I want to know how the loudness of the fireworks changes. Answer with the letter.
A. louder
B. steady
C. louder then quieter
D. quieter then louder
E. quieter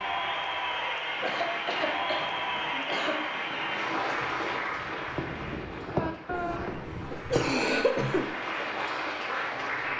A.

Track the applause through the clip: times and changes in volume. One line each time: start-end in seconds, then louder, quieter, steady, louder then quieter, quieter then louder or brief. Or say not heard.
0.0-9.9 quieter then louder.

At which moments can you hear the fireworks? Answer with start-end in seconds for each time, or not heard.
1.1-7.5.